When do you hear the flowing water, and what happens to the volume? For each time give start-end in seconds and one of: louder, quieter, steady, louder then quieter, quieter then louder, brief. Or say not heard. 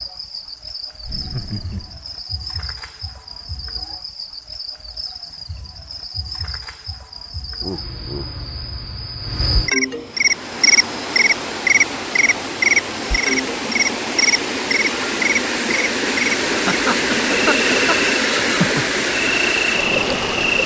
10.1-20.6 louder.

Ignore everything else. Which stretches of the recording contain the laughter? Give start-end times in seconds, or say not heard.
1.1-2.0, 7.6-8.3, 16.4-18.9.